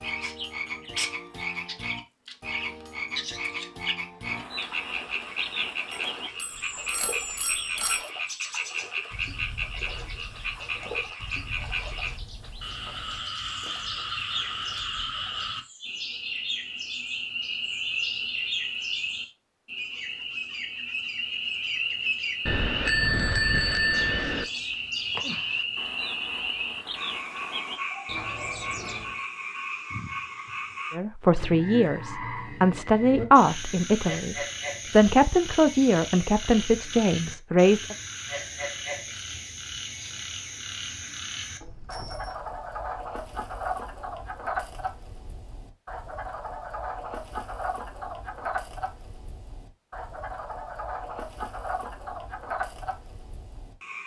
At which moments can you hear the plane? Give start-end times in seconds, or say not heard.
not heard.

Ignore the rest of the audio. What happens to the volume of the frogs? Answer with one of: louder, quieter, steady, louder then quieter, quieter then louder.
steady.